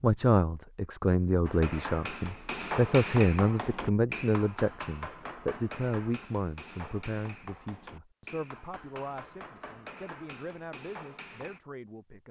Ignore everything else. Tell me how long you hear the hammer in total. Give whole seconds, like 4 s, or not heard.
10 s.